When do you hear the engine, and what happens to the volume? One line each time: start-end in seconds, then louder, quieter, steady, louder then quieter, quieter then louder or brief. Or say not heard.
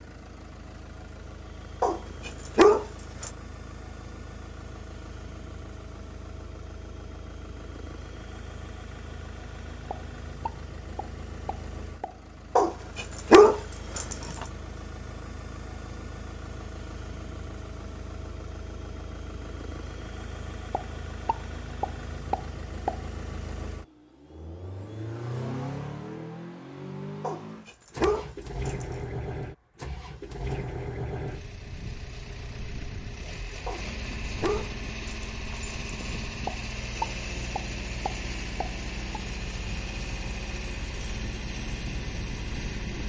0.0-43.0 louder.